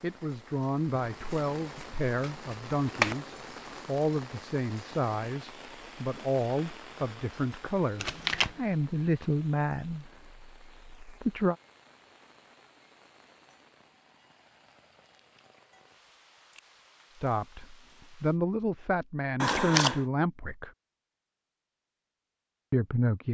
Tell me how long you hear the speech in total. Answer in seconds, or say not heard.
16 s.